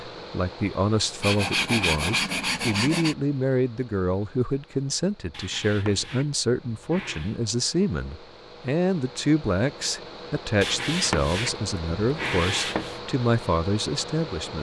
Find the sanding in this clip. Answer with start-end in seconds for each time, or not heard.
1.2-3.1, 5.3-7.3, 10.6-13.0.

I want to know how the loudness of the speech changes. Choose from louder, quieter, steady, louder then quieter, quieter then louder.
steady.